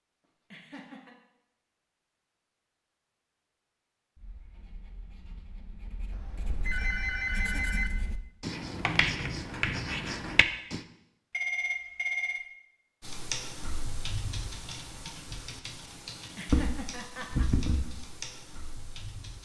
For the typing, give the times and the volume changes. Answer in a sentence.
You can hear the typing from 13.0 to 19.4 s, getting louder then quieter.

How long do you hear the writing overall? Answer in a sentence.
The writing can be heard for 7 seconds in total.